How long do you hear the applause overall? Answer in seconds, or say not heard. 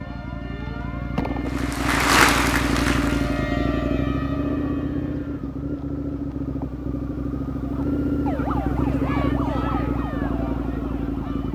2 s.